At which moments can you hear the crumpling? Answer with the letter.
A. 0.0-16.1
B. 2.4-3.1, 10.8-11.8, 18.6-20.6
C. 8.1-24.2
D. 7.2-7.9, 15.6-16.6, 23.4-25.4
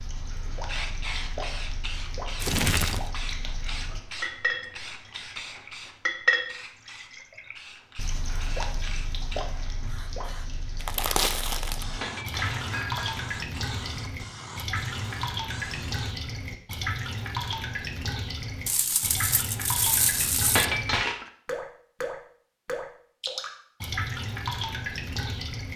B.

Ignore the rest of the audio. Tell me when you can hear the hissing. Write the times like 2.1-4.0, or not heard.
0.0-16.1.